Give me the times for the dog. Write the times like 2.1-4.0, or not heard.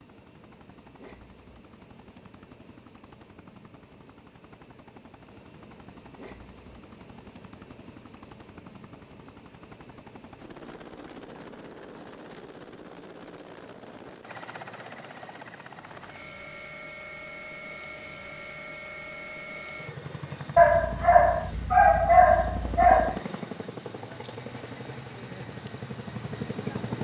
20.6-23.1.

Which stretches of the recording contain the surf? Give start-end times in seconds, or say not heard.
not heard.